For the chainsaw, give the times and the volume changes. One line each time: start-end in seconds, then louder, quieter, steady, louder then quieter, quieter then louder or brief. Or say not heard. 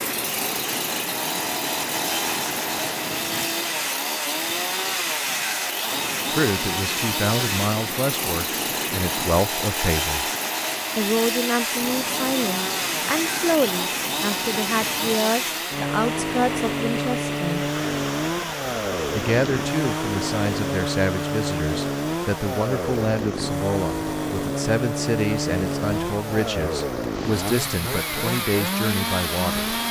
0.0-29.8 steady.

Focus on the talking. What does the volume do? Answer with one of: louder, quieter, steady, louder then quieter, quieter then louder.
steady.